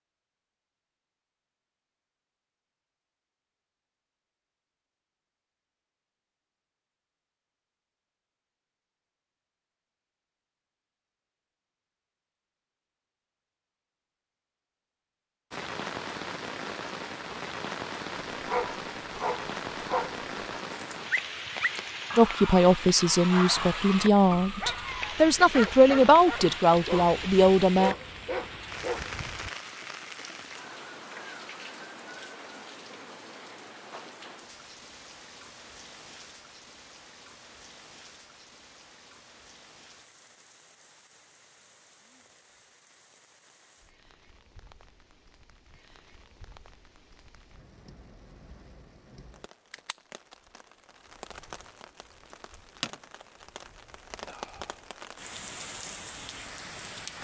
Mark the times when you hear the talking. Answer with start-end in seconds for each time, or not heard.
22.1-27.9.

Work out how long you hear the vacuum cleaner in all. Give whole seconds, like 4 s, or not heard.
not heard.